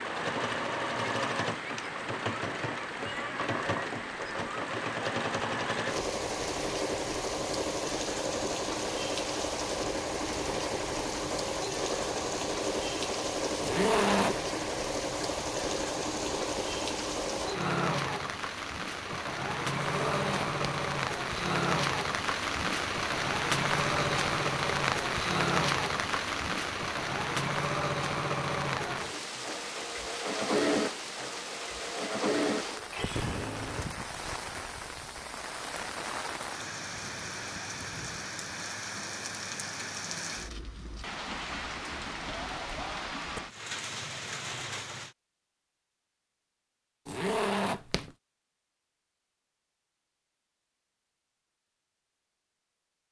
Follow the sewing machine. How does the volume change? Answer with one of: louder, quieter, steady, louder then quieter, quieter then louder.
steady.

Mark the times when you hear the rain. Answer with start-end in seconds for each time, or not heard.
0.0-45.1.